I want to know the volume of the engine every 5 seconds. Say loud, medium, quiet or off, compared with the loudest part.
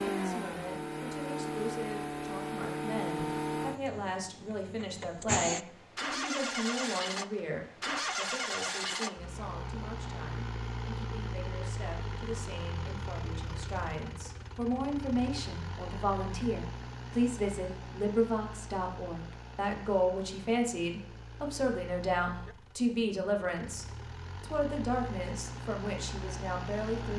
loud, loud, medium, medium, quiet, medium.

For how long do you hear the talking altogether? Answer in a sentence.
The talking can be heard for 27 seconds in total.